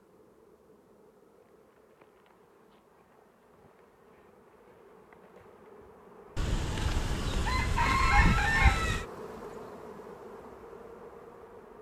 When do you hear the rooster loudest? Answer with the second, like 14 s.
8 s.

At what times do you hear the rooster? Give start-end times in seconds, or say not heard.
6.3-9.1.